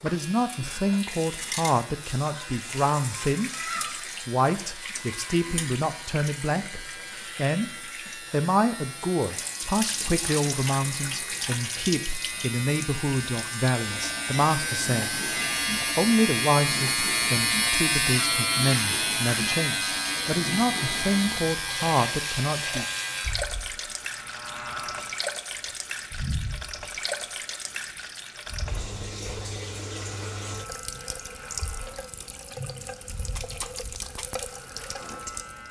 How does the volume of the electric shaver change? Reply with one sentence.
The volume of the electric shaver goes up, then down.